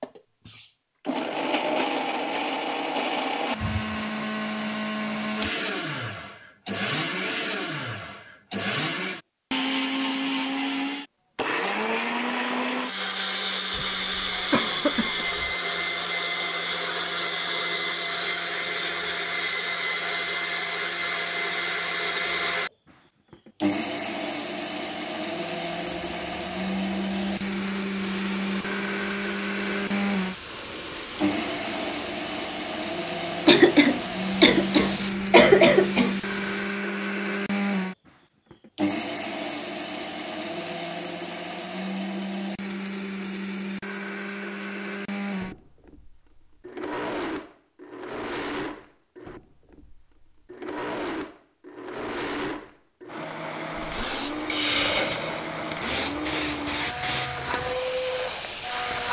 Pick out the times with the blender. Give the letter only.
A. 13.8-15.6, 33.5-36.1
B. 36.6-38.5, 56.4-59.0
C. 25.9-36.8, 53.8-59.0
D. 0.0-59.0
D.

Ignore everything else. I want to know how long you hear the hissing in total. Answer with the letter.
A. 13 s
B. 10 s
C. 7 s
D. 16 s
D.